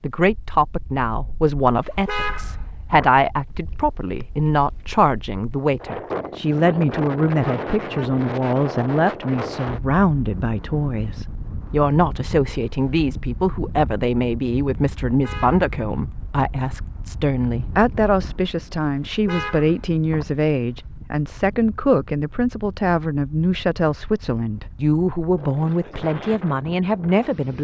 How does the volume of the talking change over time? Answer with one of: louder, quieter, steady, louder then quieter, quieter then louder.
steady.